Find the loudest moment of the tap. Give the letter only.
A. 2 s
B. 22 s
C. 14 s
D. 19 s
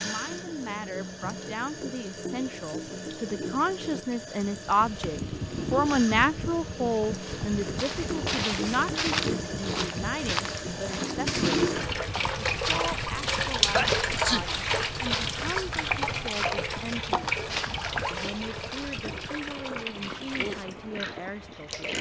C.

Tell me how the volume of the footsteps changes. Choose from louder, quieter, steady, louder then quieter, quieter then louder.
steady.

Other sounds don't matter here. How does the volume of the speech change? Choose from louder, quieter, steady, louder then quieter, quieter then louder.
louder then quieter.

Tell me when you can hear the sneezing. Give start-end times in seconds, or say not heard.
13.7-14.4.